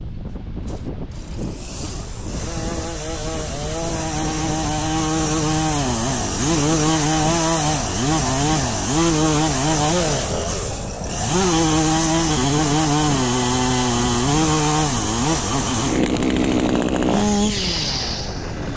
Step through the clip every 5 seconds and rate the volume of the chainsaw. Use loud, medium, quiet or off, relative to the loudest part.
medium, loud, loud, loud.